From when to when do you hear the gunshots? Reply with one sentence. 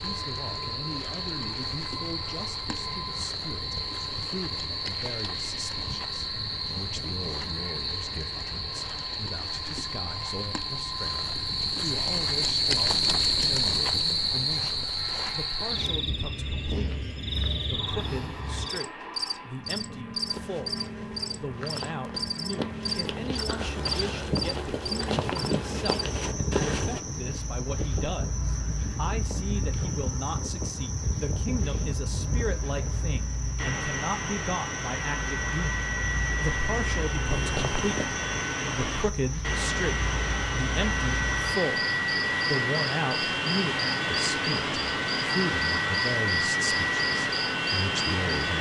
You can't hear the gunshots here.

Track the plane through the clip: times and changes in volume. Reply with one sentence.
The plane can be heard from 0.0 to 48.5 s, getting louder.